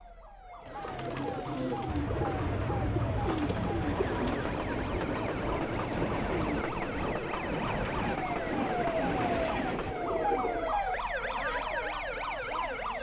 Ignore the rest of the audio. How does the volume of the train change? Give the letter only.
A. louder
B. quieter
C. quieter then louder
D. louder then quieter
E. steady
E.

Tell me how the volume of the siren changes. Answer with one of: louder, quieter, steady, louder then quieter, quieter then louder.
louder.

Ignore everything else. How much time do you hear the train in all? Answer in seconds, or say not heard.
8 s.